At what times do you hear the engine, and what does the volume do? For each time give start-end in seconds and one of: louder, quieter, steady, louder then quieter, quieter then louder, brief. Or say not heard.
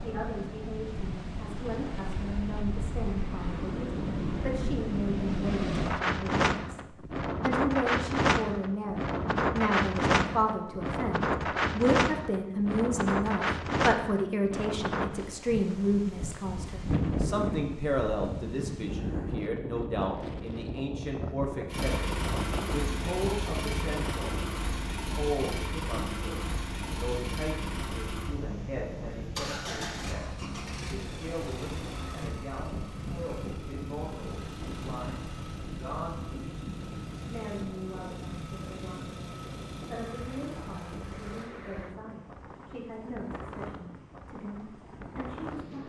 21.6-41.5 quieter.